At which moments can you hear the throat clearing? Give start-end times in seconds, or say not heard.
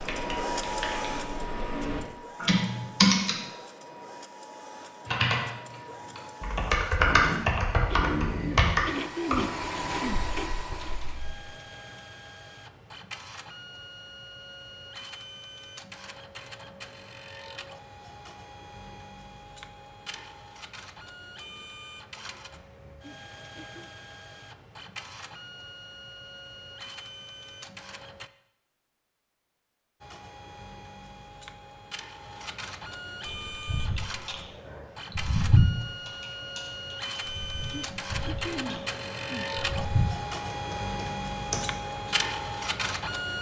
8.4-10.3, 23.0-23.9, 37.7-39.5.